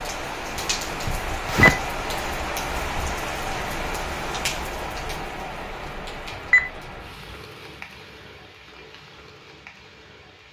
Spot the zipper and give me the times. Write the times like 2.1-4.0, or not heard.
1.4-2.3.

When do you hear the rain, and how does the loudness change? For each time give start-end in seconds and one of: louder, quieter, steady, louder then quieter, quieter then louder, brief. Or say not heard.
0.0-10.4 quieter.